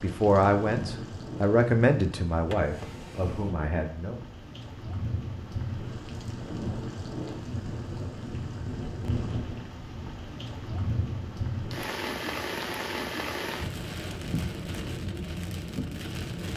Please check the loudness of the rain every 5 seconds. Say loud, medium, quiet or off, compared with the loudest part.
medium, loud, loud, loud.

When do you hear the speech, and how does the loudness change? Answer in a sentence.
You can hear the speech from 0.0 to 4.2 s, getting quieter.